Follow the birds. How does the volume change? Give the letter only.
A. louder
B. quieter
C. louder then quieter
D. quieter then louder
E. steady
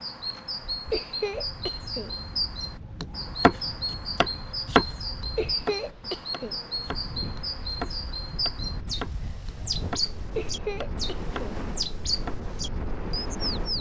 E.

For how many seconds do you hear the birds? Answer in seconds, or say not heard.
14 s.